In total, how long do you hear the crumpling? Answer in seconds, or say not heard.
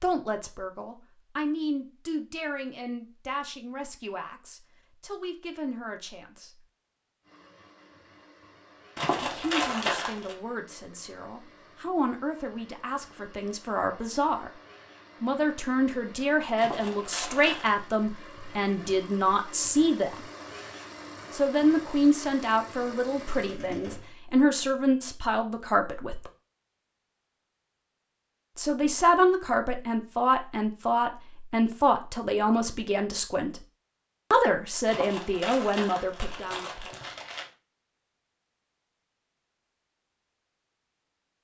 5 s.